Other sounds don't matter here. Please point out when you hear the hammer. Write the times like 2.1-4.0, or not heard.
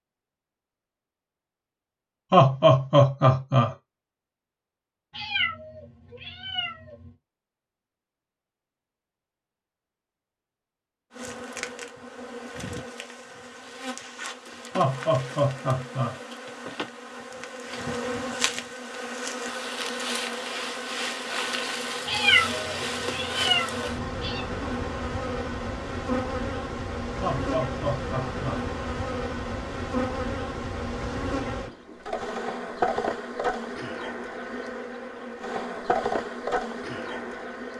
not heard.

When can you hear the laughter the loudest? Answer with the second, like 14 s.
3 s.